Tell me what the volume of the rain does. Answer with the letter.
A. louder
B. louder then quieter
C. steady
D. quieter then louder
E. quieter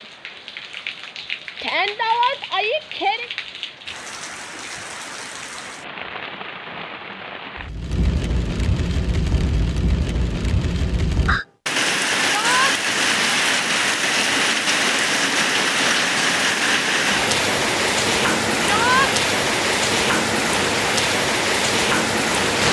A.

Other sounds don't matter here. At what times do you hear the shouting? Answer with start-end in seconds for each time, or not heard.
1.6-3.3, 12.2-12.8, 18.6-19.1.